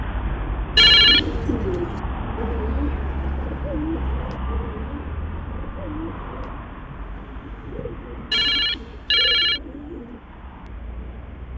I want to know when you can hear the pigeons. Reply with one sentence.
The pigeons can be heard from 0.9 to 10.2 s.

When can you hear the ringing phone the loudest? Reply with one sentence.
The volume of the ringing phone peaks at 1 second.